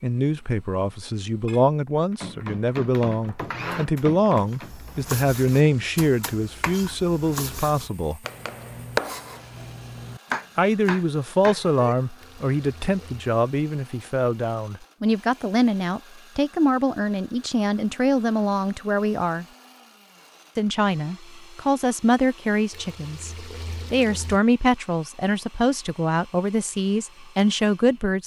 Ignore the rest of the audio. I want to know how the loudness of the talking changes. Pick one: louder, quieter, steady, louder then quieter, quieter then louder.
steady.